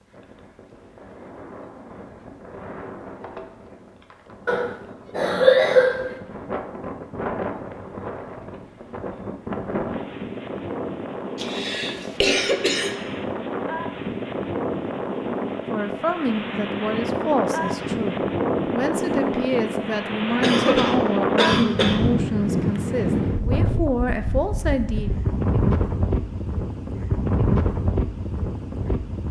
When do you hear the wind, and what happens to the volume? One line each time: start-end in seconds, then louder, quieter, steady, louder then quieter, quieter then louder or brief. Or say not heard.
0.0-29.2 louder.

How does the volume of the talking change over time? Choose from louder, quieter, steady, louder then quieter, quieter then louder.
steady.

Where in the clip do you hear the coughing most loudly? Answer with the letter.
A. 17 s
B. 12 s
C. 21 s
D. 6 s
D.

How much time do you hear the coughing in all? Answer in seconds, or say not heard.
5 s.